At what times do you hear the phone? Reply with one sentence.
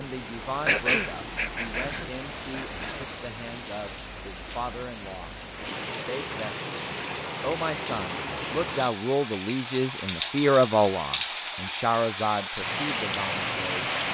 You can't hear the phone here.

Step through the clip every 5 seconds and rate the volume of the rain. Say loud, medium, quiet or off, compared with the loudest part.
medium, medium, loud.